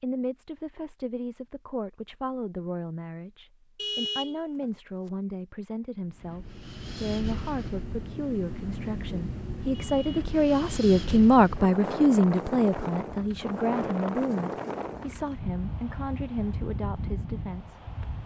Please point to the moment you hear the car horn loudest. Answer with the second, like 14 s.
4 s.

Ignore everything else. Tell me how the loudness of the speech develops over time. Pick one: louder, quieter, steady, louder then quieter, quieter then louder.
louder then quieter.